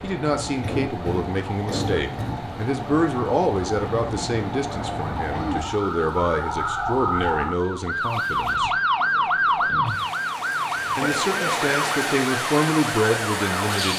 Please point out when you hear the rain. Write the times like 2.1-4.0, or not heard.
0.0-13.9.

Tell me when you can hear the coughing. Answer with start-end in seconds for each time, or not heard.
0.6-2.5, 5.3-5.7, 11.0-11.6.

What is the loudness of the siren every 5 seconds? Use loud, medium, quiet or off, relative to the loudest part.
medium, loud, loud.